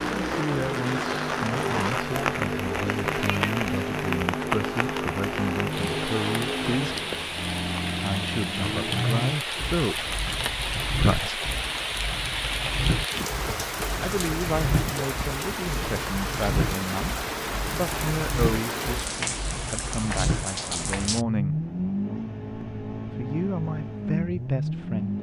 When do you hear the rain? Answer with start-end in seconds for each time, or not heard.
0.0-21.2.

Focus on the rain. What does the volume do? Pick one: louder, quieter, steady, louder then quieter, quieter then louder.
steady.